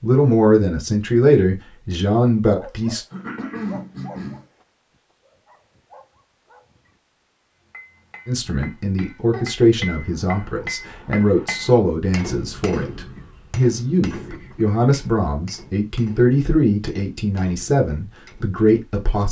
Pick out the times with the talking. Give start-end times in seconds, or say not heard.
0.0-3.0, 8.2-19.2.